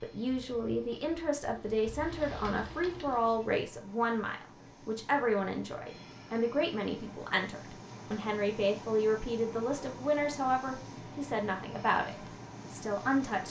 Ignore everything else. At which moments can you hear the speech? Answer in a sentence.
The speech can be heard from 0.0 to 13.4 s.